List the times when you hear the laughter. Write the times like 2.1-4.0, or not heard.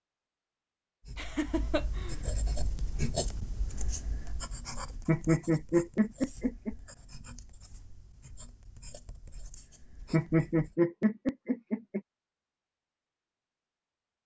1.1-2.1, 5.0-6.8, 10.1-12.0.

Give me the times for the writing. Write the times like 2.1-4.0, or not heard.
1.1-10.8.